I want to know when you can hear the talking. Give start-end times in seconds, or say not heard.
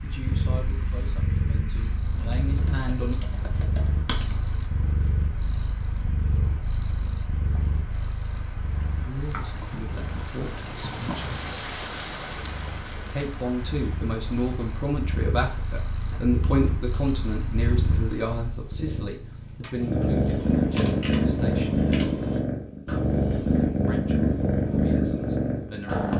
0.0-3.1, 9.1-11.3, 13.1-21.9, 23.9-26.1.